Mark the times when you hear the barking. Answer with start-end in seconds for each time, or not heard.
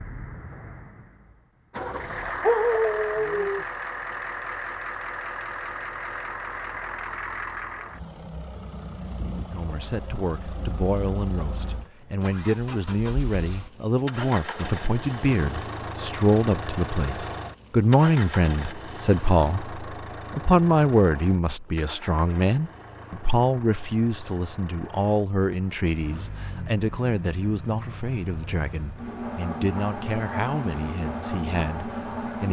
2.4-3.6.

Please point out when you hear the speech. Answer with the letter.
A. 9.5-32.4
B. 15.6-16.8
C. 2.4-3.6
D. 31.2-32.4
A.